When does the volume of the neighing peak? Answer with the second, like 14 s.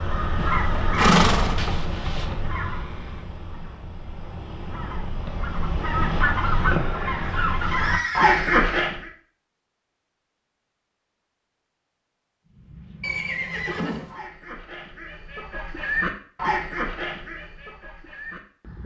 1 s.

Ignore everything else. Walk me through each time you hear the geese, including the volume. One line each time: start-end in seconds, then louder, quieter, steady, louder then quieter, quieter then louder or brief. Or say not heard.
0.0-9.1 quieter then louder
12.4-18.8 louder then quieter.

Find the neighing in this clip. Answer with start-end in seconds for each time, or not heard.
0.3-2.2, 7.2-8.9, 13.0-14.2.